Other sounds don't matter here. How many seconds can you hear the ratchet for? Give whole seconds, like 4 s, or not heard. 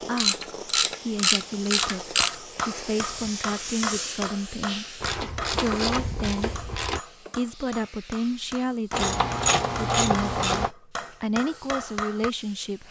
6 s.